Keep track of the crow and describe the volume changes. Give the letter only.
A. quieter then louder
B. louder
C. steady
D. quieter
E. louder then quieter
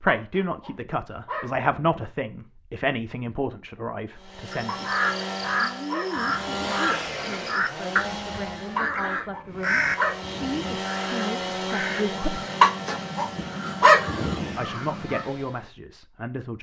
D.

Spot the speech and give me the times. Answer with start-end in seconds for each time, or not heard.
0.0-5.0, 5.6-12.4, 14.6-16.5.